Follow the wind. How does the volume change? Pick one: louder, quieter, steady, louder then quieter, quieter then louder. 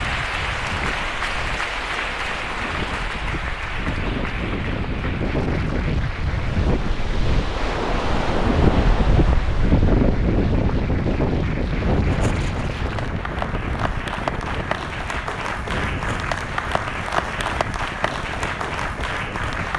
louder then quieter.